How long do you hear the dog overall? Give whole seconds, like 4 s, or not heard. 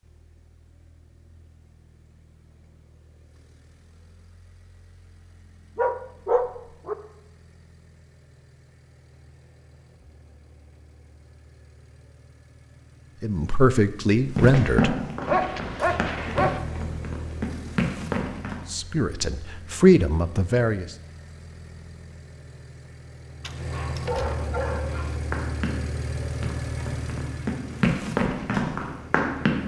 4 s.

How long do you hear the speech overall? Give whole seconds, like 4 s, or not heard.
4 s.